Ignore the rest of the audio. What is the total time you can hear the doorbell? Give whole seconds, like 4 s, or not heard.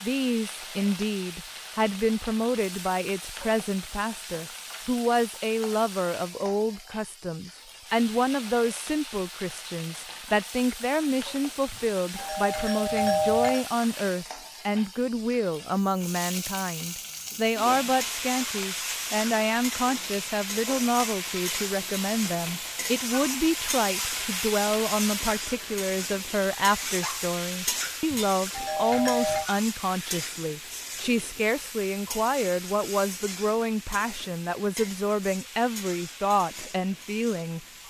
3 s.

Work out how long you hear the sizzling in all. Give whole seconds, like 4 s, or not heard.
38 s.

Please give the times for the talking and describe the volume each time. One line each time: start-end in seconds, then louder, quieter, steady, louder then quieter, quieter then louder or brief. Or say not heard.
0.0-37.6 steady.